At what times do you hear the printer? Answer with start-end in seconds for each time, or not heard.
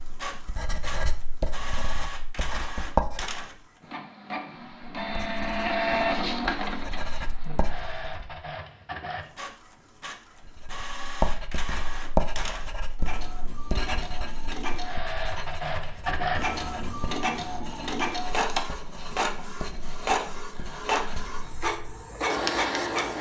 0.0-23.1.